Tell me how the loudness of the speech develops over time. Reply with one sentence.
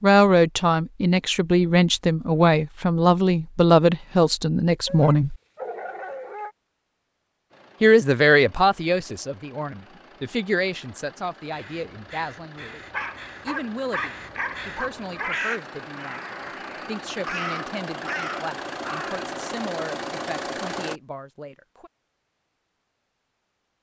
The loudness of the speech goes down.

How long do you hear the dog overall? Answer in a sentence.
The dog can be heard for 4 seconds in total.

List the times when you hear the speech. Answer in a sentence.
You can hear the speech from 0.0 to 5.3 s, from 7.8 to 12.8 s and from 13.4 to 21.9 s.